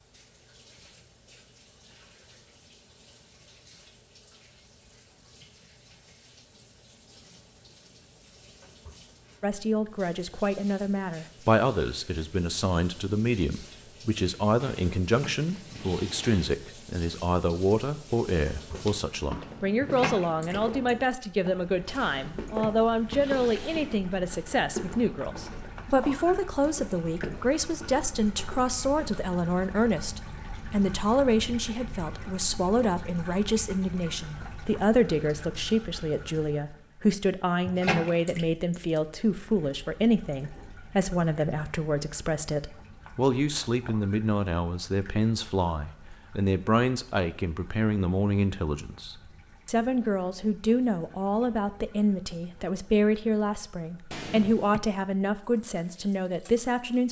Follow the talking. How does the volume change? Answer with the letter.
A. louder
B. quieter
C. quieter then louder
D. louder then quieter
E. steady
E.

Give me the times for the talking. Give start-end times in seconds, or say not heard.
9.4-57.0.